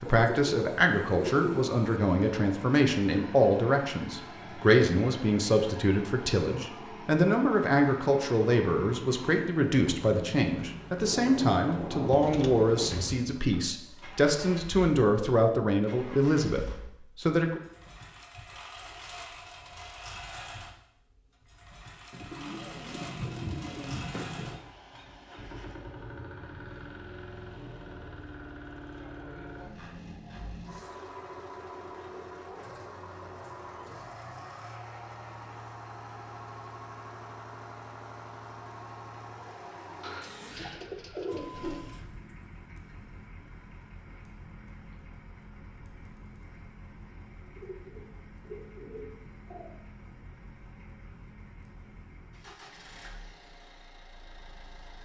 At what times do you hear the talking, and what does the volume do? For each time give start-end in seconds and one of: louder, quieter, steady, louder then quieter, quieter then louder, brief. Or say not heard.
0.0-17.6 steady.